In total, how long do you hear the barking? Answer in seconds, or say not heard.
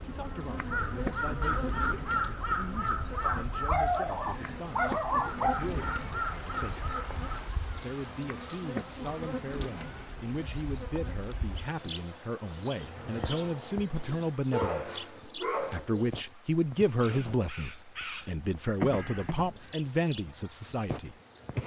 4 s.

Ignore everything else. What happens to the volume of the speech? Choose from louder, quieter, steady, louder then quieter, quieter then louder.
louder.